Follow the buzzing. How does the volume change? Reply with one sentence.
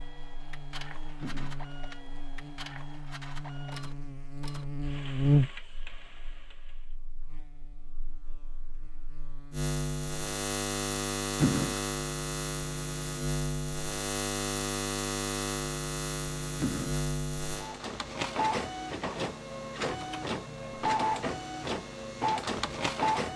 The volume of the buzzing goes up, then down.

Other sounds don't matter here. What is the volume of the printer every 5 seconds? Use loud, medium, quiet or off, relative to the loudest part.
quiet, quiet, off, loud, loud.